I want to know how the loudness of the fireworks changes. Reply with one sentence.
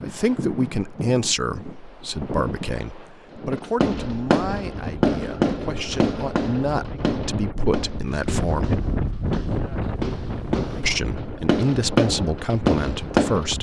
The volume of the fireworks goes down, then up.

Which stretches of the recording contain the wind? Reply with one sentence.
You can hear the wind from 0.0 to 13.5 s.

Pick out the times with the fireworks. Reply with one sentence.
You can hear the fireworks from 3.3 to 13.5 s.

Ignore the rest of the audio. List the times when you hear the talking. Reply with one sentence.
The talking can be heard from 0.0 to 8.7 s and from 10.8 to 13.5 s.